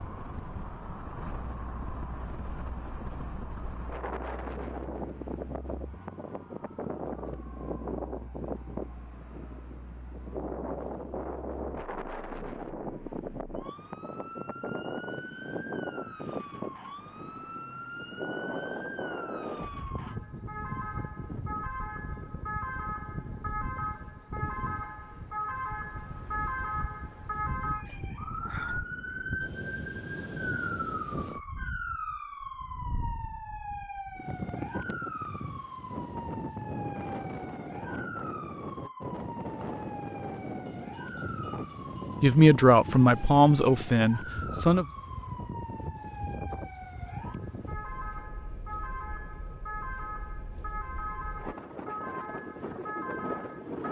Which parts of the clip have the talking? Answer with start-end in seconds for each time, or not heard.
42.2-44.9.